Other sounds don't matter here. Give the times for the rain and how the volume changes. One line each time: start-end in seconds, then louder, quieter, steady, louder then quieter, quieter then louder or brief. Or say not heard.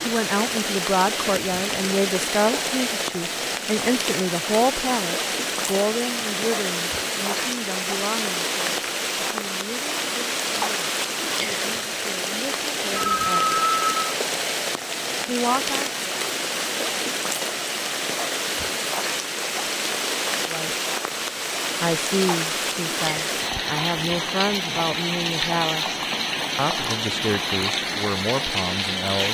0.0-29.2 steady.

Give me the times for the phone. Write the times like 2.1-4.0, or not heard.
12.9-14.0.